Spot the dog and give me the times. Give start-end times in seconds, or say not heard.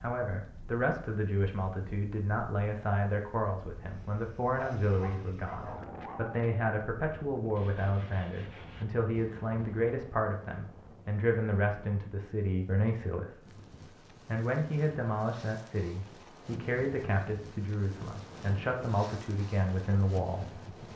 4.5-6.4.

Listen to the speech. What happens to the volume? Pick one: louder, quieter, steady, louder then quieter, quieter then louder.
steady.